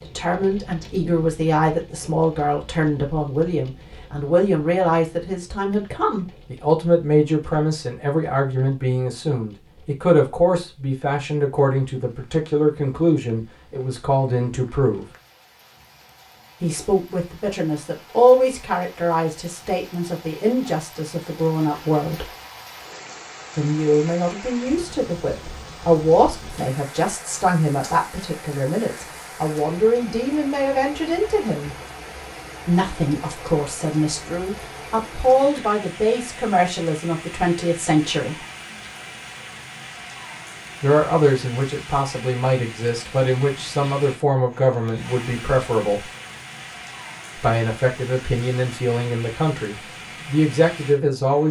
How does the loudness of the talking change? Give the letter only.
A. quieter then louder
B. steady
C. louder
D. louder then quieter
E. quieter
B.